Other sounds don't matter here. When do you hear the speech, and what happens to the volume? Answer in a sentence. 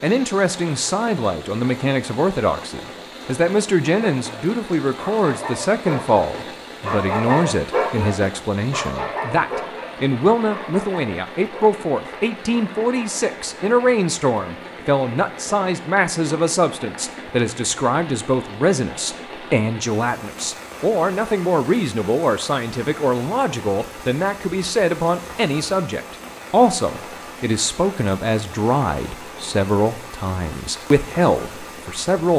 The speech can be heard from 0.0 to 32.3 s, at a steady volume.